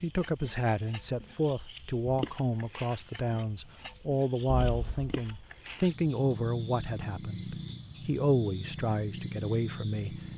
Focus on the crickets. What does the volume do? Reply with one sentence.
The loudness of the crickets stays about the same.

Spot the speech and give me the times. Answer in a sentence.
You can hear the speech from 0.0 to 10.2 s.